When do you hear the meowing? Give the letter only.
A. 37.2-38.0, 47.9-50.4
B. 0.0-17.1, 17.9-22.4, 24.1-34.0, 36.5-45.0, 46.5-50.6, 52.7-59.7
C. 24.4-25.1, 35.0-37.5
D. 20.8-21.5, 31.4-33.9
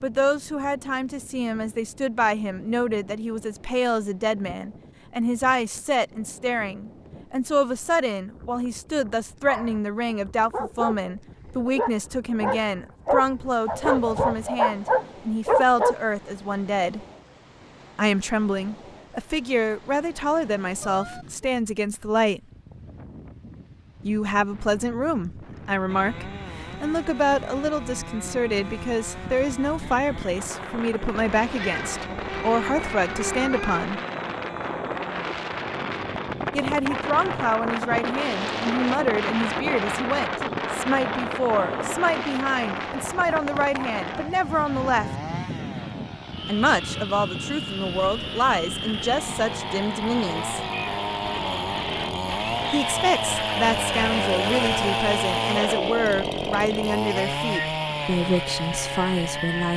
D.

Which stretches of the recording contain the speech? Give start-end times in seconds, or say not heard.
0.0-17.1, 17.9-22.4, 24.1-34.0, 36.5-45.0, 46.5-50.6, 52.7-59.7.